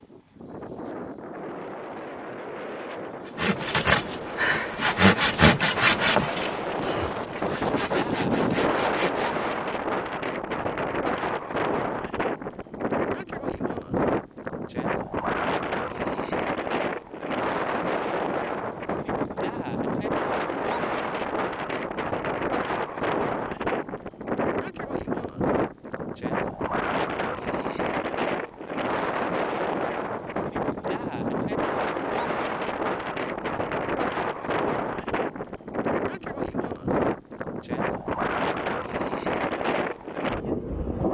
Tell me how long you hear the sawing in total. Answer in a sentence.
The sawing can be heard for 6 seconds in total.